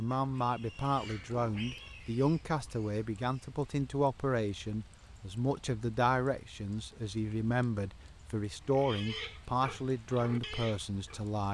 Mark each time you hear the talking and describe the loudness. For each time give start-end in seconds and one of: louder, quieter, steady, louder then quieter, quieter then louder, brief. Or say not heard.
0.0-11.4 steady.